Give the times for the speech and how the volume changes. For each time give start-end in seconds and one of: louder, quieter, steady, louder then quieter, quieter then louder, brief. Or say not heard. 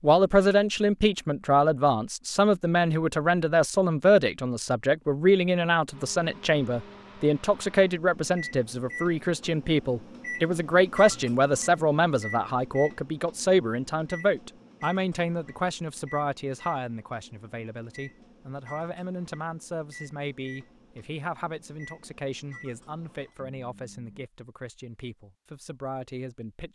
0.0-26.6 quieter.